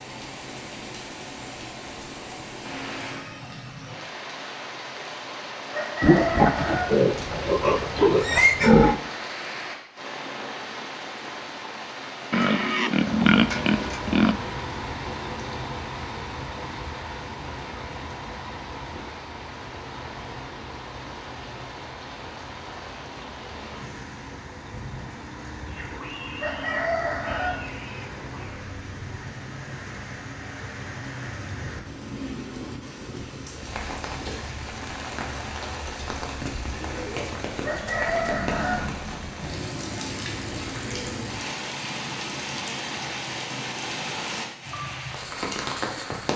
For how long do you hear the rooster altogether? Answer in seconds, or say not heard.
4 s.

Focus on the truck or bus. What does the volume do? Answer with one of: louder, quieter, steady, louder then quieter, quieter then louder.
quieter.